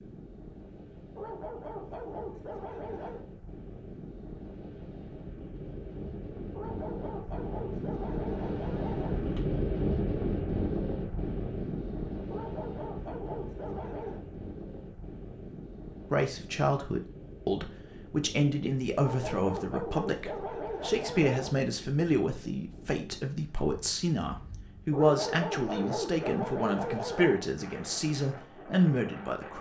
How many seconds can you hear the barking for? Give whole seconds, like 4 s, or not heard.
12 s.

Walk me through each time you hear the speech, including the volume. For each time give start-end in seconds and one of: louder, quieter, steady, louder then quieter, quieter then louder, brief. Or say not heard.
16.1-29.5 steady.